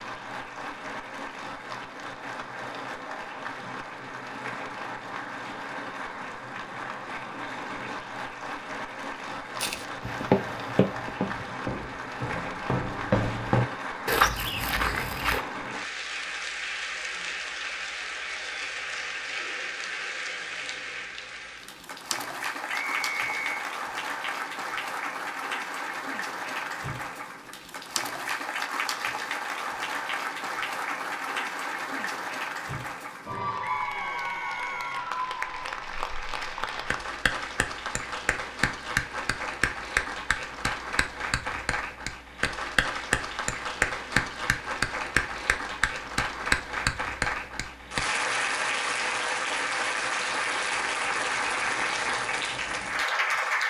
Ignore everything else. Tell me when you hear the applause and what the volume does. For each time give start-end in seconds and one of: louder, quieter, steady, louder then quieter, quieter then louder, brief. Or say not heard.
0.0-53.6 louder.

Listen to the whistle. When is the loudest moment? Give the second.
23 s.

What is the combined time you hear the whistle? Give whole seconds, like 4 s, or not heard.
2 s.